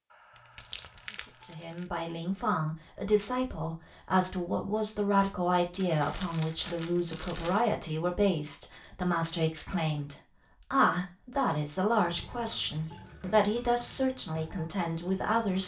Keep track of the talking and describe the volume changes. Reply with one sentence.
The loudness of the talking stays about the same.